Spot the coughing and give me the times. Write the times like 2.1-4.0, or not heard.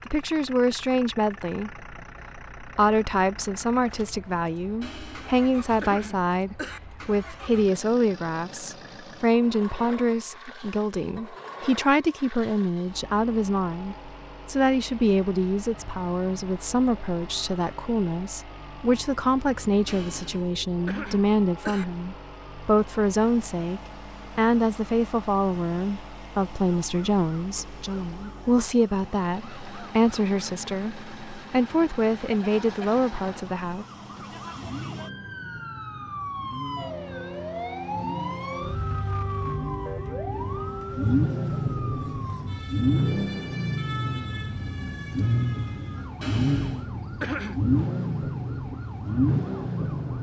4.8-6.8, 19.9-21.9, 46.2-47.6.